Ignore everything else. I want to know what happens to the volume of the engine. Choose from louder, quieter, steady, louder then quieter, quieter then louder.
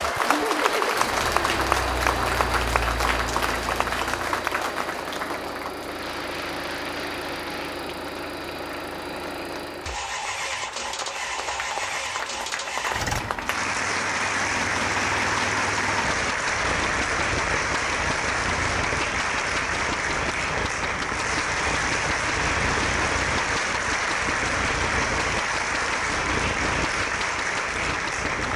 steady.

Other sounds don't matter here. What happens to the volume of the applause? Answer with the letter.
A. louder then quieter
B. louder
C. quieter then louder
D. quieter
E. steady
C.